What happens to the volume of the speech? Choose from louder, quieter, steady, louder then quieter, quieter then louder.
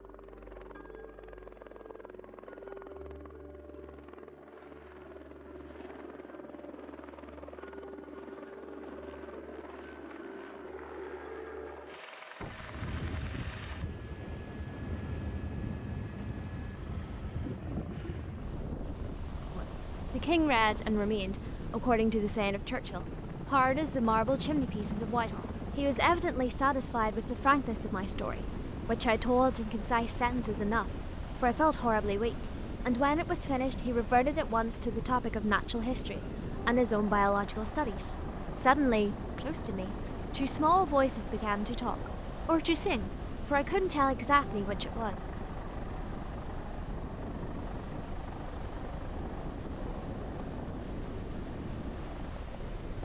steady.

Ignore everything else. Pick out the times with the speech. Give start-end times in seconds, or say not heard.
19.6-45.1.